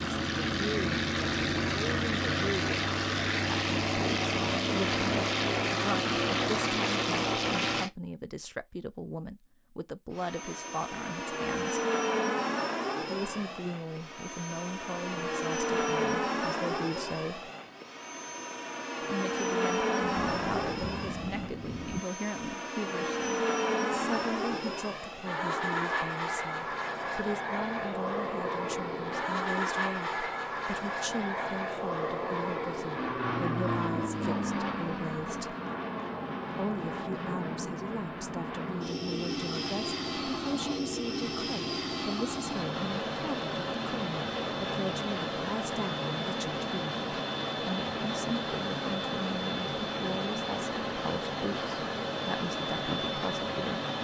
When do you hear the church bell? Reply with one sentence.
You can't hear the church bell here.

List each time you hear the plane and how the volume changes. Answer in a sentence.
The plane can be heard from 0.0 to 7.9 s, at a steady volume; and from 10.1 to 53.9 s, at a steady volume.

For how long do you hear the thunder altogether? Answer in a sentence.
The thunder can be heard for 2 seconds in total.